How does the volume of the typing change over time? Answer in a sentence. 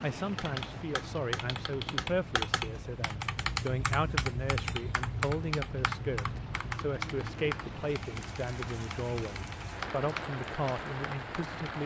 The loudness of the typing goes down.